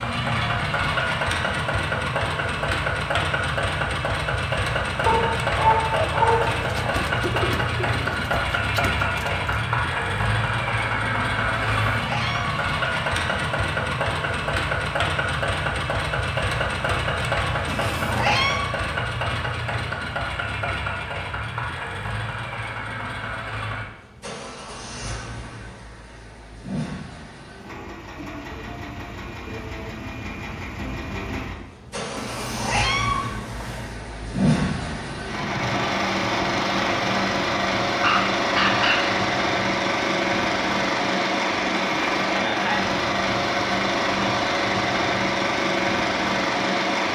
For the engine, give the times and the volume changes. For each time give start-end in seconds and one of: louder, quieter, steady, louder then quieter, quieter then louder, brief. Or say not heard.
0.0-47.1 quieter then louder.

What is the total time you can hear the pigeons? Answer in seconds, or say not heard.
4 s.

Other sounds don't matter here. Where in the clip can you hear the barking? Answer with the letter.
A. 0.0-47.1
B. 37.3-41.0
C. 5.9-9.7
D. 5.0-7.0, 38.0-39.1
D.